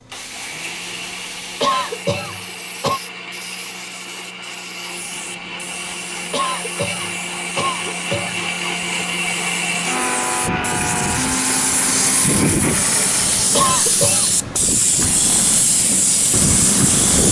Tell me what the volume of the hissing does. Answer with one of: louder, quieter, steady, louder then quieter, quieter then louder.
louder.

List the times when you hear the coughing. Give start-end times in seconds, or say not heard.
1.6-3.0, 6.3-8.4, 13.5-14.3.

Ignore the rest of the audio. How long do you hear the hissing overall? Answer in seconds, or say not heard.
17 s.